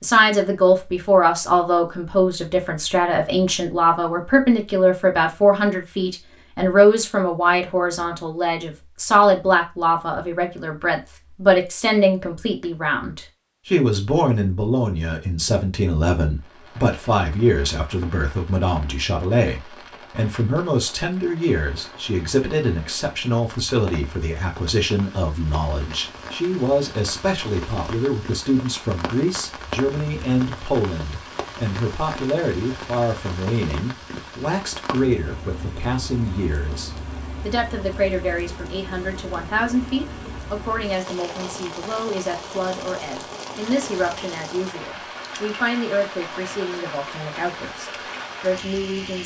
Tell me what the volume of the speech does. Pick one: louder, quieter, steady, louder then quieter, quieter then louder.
quieter.